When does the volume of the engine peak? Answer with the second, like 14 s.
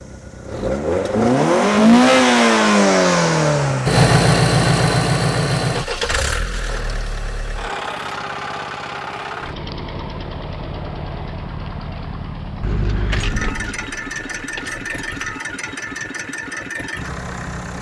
2 s.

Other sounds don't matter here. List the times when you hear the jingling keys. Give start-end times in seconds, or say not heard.
12.6-15.4.